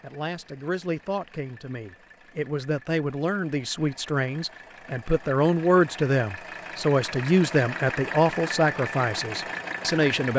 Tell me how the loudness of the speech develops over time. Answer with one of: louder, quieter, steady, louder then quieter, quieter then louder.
louder.